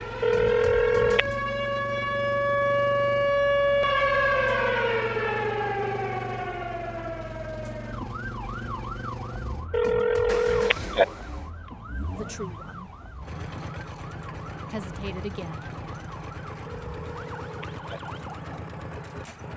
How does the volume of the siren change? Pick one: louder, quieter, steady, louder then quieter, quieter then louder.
quieter.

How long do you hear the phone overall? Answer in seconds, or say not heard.
4 s.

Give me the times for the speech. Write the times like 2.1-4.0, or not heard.
12.2-12.9, 14.7-15.7.